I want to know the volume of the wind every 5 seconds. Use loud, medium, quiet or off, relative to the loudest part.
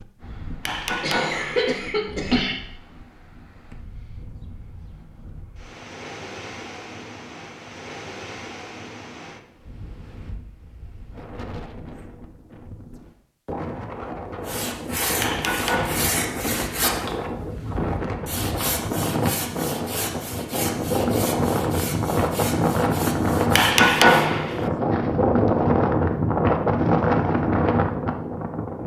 quiet, quiet, quiet, medium, loud, loud.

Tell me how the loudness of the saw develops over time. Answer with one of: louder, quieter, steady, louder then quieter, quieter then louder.
quieter.